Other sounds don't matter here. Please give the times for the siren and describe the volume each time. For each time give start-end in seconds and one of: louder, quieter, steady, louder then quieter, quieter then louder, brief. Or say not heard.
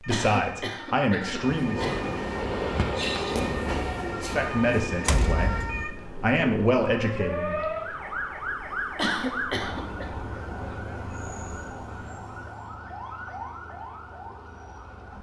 0.0-15.1 louder then quieter.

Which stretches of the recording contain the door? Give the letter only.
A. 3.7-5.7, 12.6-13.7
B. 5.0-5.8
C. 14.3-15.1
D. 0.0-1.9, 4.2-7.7
B.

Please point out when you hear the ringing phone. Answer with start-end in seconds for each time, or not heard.
not heard.